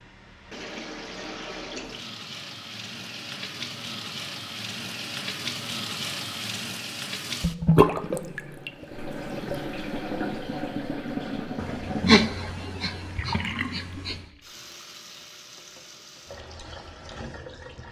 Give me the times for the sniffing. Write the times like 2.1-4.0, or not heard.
11.6-14.2.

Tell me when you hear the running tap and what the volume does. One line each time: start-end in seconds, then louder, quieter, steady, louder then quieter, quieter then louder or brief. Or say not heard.
0.0-17.8 louder then quieter.